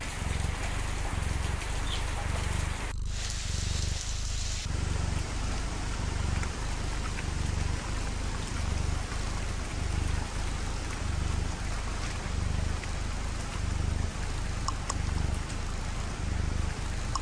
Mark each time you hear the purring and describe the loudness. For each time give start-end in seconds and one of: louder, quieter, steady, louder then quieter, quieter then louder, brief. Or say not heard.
0.0-16.9 steady.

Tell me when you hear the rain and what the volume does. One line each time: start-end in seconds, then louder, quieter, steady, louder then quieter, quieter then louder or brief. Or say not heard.
0.0-17.1 steady.